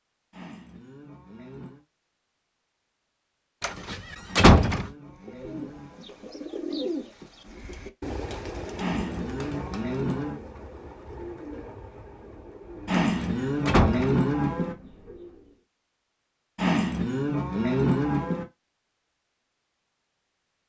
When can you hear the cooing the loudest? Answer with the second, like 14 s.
7 s.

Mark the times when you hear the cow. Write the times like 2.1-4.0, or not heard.
0.3-1.9, 4.2-6.0, 8.8-10.4, 12.8-14.8, 16.6-18.4.